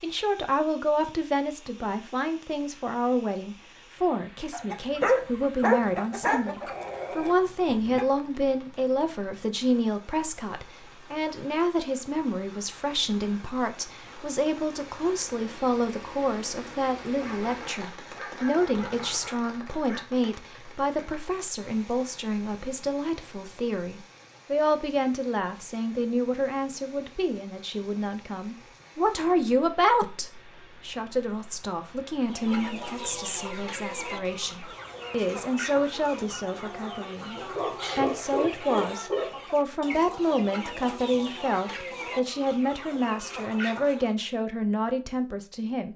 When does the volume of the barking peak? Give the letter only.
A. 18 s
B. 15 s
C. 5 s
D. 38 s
C.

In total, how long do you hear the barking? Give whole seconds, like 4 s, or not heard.
7 s.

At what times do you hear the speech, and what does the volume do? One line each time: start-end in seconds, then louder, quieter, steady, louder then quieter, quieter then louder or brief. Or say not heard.
0.0-45.9 steady.